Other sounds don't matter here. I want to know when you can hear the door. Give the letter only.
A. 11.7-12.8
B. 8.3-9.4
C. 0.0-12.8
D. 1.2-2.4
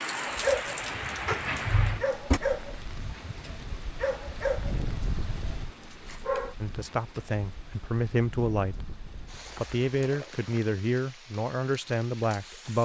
D.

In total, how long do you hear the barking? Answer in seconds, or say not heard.
6 s.